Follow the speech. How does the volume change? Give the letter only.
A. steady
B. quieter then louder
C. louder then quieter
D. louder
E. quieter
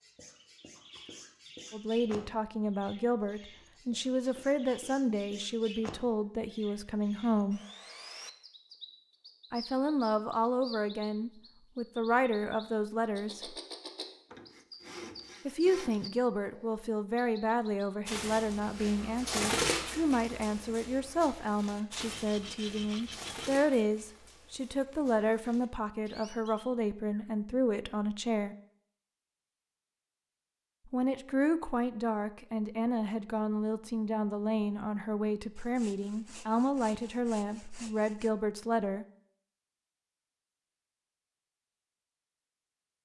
A.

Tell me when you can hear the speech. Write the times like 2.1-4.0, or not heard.
1.7-7.6, 9.5-13.6, 15.4-28.6, 30.9-39.0.